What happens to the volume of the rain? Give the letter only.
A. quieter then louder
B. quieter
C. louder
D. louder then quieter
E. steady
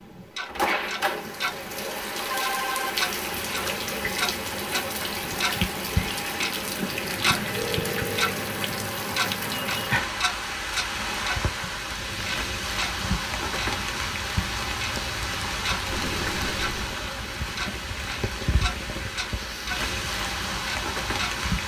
E.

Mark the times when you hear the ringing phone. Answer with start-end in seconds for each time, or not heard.
1.4-3.0, 7.5-8.3, 15.9-17.0.